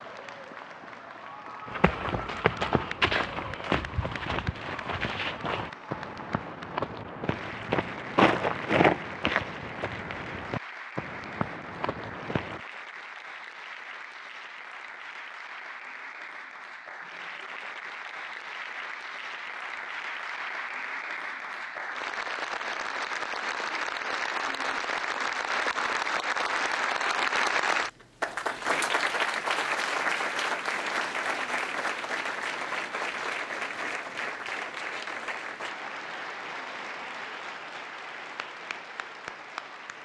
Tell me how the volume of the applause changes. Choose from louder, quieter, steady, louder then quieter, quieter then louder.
louder then quieter.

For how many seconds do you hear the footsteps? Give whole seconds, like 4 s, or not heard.
11 s.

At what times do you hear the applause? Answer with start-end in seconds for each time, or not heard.
0.0-40.0.